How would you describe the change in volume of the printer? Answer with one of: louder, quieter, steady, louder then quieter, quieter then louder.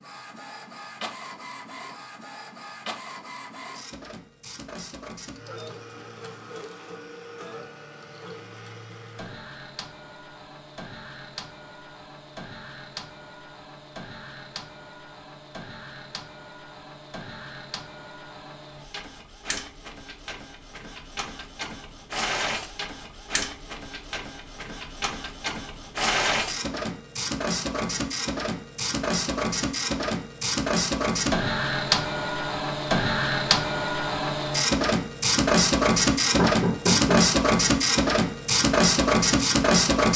louder.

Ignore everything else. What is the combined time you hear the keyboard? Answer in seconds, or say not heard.
not heard.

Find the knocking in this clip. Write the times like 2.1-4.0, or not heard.
36.4-37.4.